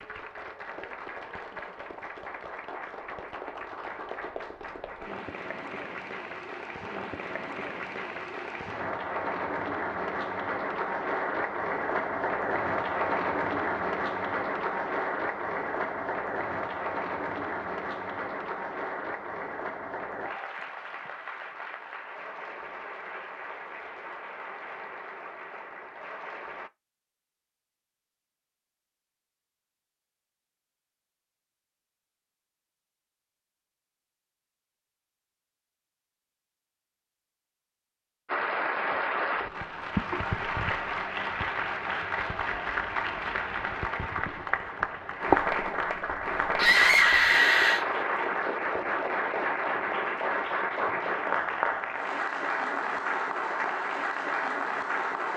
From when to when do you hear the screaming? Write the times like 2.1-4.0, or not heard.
46.5-47.9.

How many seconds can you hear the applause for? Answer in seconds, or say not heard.
44 s.